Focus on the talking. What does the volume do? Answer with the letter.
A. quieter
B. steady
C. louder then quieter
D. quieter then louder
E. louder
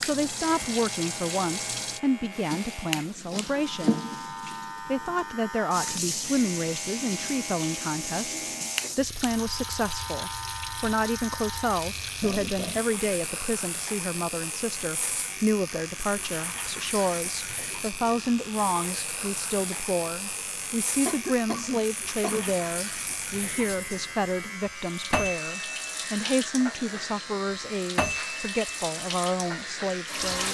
B.